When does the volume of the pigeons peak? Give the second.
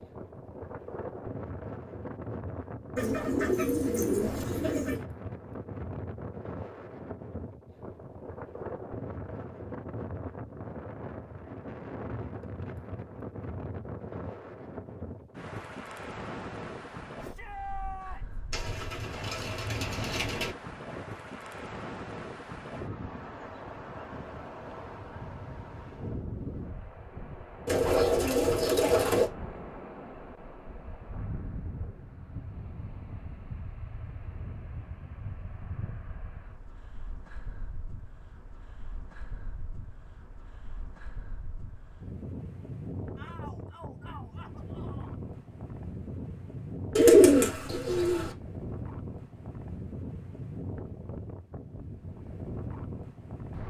47 s.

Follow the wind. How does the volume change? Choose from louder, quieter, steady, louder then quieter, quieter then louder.
quieter then louder.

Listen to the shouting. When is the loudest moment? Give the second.
18 s.